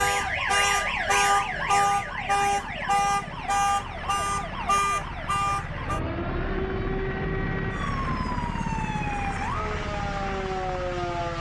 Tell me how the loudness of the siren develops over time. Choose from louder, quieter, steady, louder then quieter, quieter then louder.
quieter.